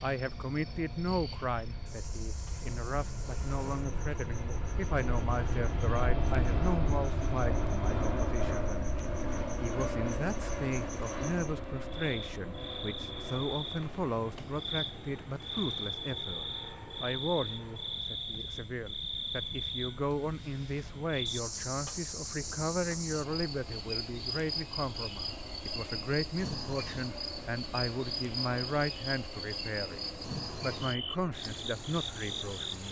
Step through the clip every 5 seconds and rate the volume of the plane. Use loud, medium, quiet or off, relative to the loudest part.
medium, loud, medium, quiet, quiet, quiet, quiet.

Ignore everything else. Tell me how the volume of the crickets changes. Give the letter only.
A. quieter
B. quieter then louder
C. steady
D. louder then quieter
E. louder
E.